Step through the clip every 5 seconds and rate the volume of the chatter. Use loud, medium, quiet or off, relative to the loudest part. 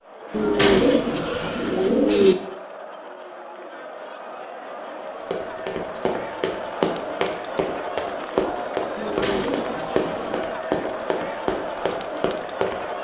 medium, loud, loud.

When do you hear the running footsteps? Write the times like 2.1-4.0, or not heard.
5.3-12.9.